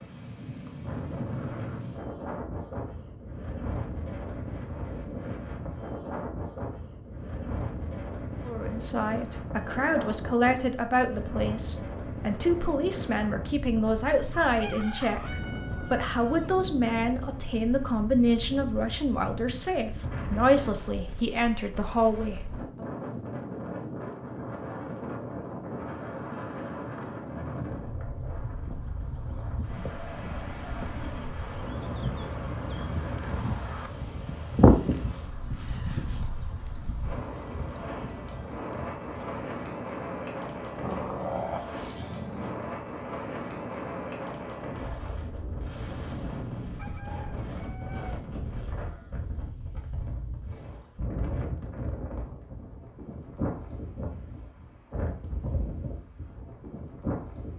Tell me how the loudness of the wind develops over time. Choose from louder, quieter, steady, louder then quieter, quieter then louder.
steady.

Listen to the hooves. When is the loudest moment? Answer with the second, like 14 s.
35 s.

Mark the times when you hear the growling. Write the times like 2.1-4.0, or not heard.
40.8-42.5.